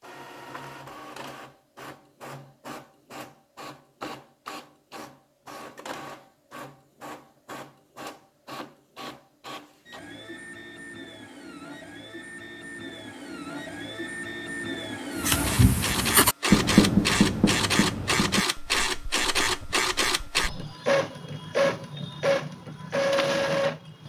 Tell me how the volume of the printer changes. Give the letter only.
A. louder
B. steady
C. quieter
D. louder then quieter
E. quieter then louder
A.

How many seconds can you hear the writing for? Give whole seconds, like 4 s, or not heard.
5 s.